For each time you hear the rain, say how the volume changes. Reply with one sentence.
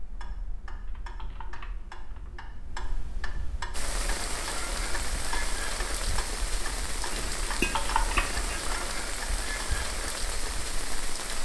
You can hear the rain from 3.7 to 11.3 s, at a steady volume.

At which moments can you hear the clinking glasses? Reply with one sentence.
The clinking glasses can be heard from 7.1 to 8.7 s.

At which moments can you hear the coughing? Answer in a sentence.
The coughing can't be heard in this clip.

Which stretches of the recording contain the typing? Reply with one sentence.
You can hear the typing from 0.8 to 2.3 s and from 7.6 to 8.8 s.